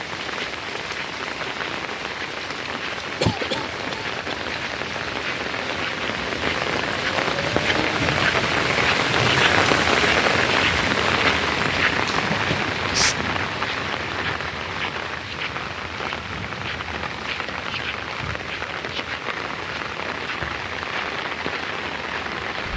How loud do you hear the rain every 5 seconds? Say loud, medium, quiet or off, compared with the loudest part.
medium, loud, loud, medium, medium.